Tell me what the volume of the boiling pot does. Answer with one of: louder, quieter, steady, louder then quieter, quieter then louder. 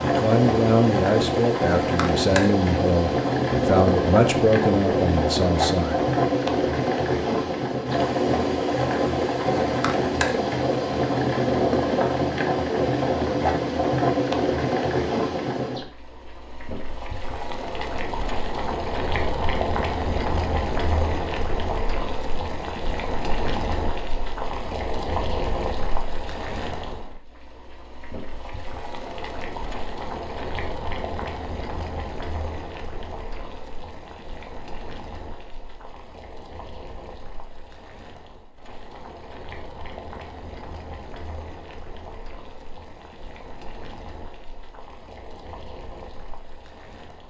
quieter.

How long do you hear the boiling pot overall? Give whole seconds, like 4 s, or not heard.
47 s.